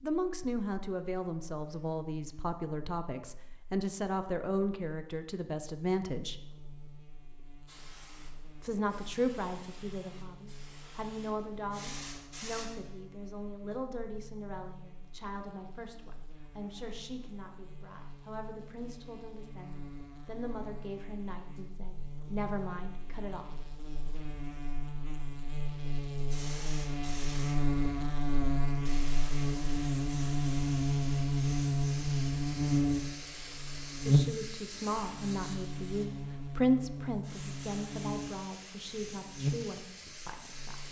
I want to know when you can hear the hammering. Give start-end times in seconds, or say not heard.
not heard.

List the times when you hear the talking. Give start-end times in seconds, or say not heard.
0.0-6.4, 8.6-23.4, 34.0-40.8.